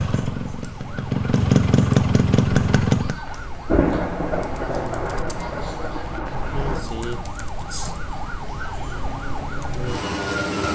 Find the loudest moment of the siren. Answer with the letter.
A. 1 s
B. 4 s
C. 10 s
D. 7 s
C.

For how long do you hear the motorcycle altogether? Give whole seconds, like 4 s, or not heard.
3 s.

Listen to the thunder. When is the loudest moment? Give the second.
4 s.